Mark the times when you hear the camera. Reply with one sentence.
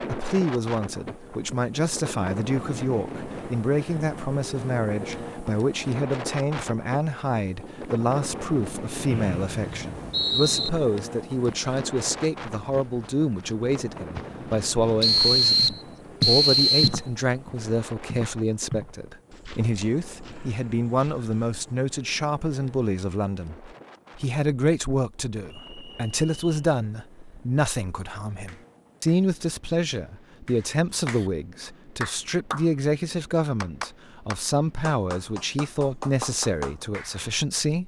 You can't hear the camera here.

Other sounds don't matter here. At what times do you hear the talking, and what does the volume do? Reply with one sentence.
You can hear the talking from 0.0 to 37.8 s, at a steady volume.